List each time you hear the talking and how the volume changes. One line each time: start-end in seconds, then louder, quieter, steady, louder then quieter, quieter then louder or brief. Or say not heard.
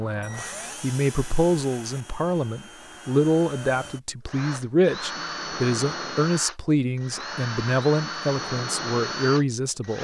0.0-9.9 steady.